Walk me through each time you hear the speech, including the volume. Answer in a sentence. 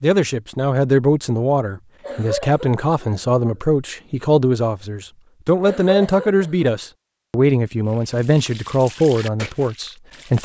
You can hear the speech from 0.0 to 10.4 s, at a steady volume.